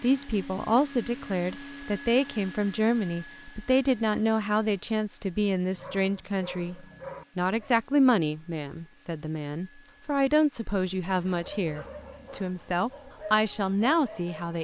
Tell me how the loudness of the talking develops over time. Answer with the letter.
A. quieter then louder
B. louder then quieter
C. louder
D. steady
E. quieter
D.